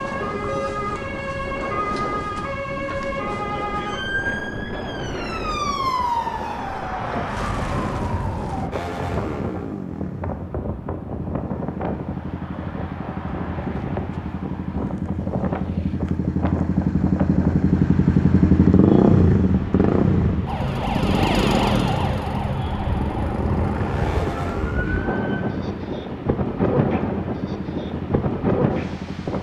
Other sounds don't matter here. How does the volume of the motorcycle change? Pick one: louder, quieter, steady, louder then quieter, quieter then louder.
louder then quieter.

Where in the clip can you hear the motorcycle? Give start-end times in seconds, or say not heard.
8.7-29.3.